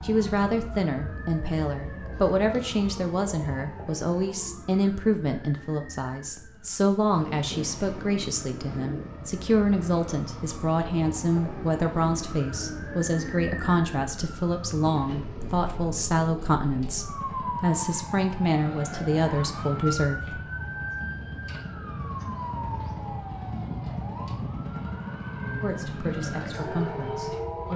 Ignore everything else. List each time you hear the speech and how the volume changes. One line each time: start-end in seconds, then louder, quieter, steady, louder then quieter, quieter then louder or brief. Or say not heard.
0.0-20.4 steady
25.6-27.7 brief.